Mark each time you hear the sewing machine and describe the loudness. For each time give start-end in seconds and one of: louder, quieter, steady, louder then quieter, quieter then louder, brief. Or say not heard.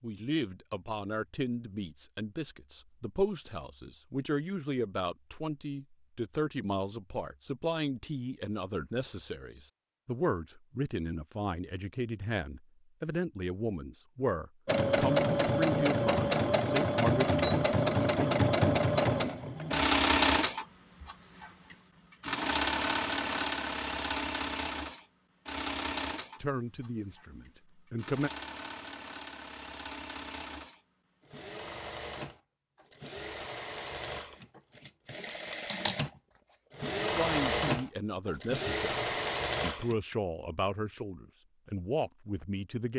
14.7-40.0 quieter then louder.